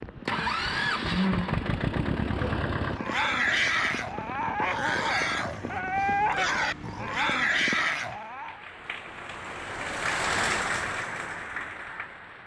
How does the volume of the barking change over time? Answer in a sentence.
The loudness of the barking stays about the same.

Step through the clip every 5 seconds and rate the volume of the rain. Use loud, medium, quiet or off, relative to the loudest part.
medium, medium, loud.